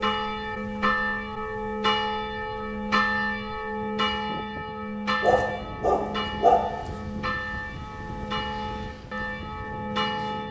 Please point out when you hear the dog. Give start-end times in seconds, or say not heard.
5.2-6.6.